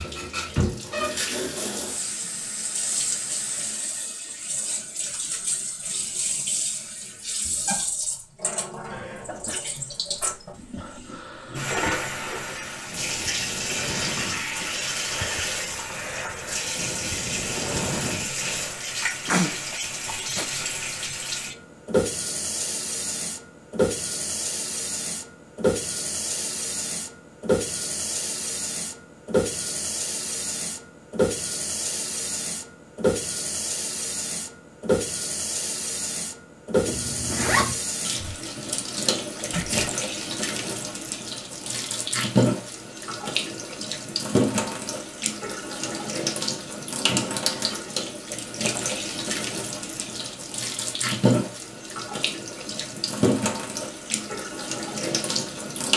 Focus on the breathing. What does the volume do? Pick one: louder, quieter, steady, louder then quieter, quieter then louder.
louder.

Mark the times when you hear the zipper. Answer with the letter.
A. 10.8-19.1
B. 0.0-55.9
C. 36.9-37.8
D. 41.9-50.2
C.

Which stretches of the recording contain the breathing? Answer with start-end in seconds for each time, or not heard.
10.8-19.1.